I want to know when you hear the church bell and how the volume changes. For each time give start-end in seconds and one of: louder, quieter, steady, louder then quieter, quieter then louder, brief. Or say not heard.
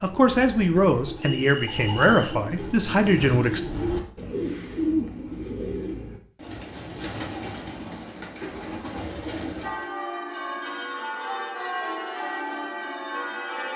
9.6-13.7 steady.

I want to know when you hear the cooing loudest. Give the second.
5 s.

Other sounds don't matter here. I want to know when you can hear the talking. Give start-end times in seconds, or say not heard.
0.0-3.6.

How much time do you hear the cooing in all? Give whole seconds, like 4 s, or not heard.
10 s.